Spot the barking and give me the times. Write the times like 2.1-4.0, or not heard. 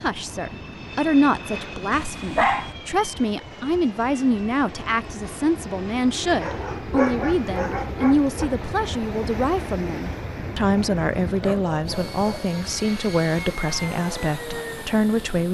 2.1-2.8, 6.4-8.5, 11.4-12.4.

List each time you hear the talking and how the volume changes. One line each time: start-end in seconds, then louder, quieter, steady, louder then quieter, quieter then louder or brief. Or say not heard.
0.0-15.5 steady.